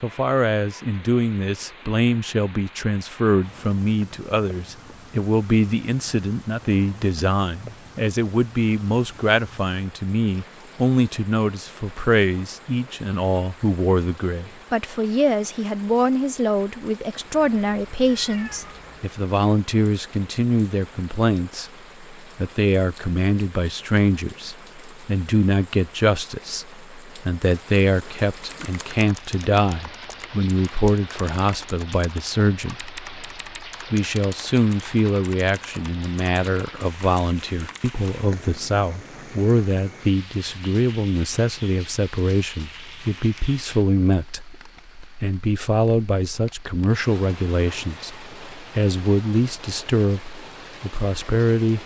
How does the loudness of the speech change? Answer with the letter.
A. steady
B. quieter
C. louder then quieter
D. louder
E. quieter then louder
A.